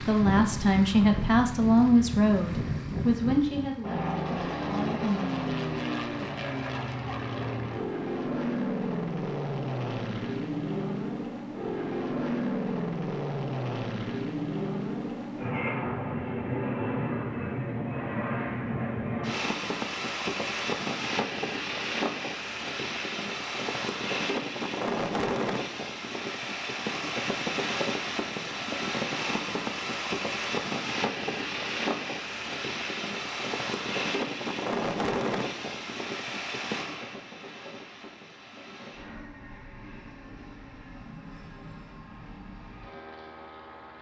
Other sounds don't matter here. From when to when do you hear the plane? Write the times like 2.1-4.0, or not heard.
0.0-43.9.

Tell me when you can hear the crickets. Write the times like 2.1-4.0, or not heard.
not heard.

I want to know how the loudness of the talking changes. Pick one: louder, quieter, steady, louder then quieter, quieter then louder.
quieter.